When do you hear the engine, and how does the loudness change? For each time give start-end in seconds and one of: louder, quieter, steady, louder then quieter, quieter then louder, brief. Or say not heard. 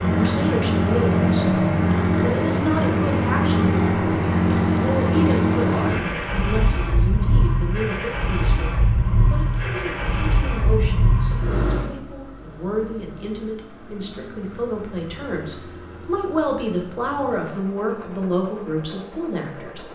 0.0-19.9 quieter.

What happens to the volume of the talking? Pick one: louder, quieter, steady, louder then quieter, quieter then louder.
quieter then louder.